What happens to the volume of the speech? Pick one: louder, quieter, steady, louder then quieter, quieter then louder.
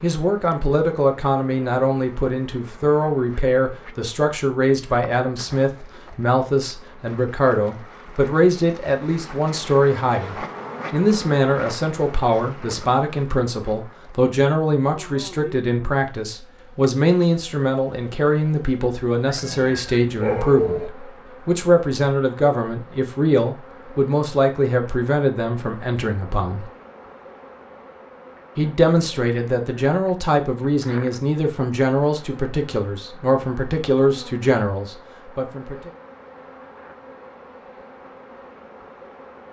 steady.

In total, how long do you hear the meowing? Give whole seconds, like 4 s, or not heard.
2 s.